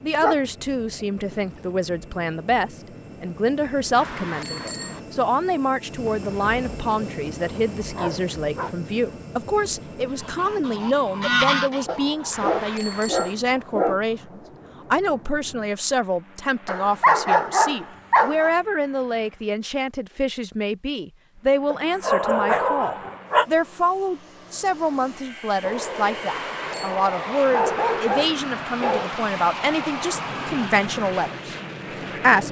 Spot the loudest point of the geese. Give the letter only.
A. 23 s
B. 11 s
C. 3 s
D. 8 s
B.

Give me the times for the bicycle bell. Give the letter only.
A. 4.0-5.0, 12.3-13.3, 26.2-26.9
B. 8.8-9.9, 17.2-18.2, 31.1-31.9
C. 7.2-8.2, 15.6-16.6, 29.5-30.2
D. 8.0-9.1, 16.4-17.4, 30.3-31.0
A.